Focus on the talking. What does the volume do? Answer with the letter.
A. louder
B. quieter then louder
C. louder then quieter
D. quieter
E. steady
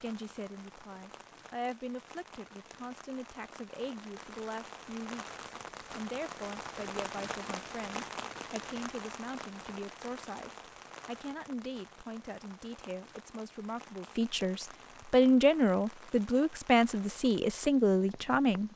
A.